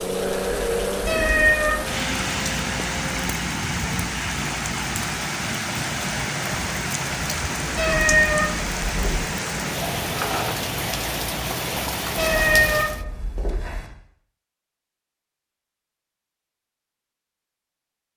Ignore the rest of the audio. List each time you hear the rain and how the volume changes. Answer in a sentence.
The rain can be heard from 0.0 to 13.1 s, at a steady volume.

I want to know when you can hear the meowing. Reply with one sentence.
You can hear the meowing from 1.1 to 1.9 s, from 7.8 to 9.2 s and from 12.2 to 13.9 s.